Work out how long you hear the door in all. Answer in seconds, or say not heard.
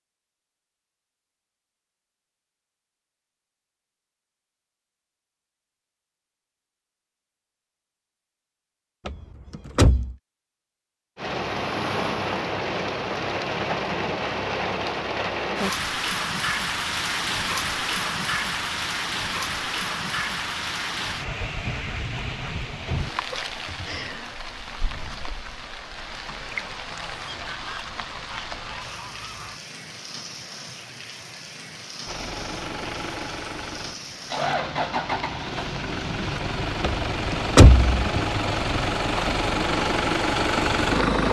2 s.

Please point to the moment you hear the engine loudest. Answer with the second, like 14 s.
41 s.